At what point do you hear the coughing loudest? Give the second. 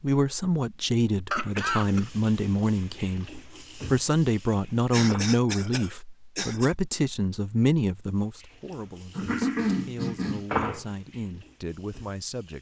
10 s.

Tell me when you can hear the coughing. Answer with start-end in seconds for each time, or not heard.
1.3-2.1, 4.9-6.7, 9.2-10.4.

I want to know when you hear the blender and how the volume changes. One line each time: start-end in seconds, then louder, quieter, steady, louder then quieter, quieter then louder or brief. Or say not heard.
not heard.